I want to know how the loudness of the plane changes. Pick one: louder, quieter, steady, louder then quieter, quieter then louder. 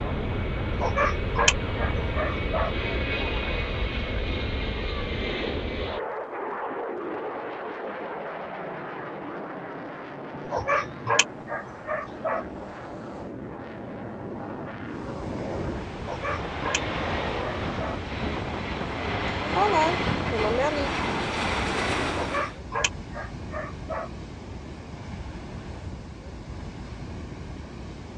quieter then louder.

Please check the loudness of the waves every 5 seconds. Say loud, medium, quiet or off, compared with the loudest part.
off, off, quiet, loud, loud, loud.